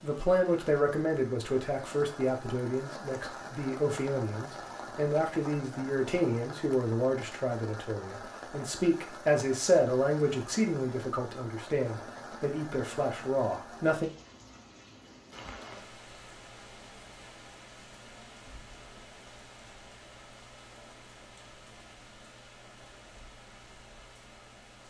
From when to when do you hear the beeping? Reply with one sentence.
You can't hear the beeping here.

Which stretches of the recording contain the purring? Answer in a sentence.
The purring can't be heard in this clip.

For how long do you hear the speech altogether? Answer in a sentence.
You can hear the speech for 14 seconds altogether.